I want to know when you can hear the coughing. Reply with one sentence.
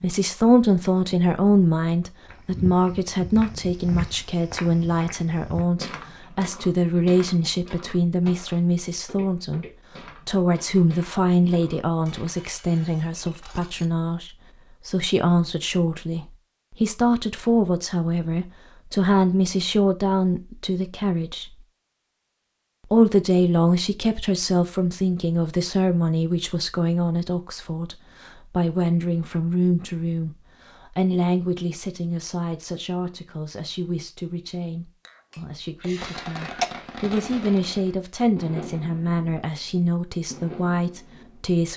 You can hear the coughing from 35.8 to 36.6 s.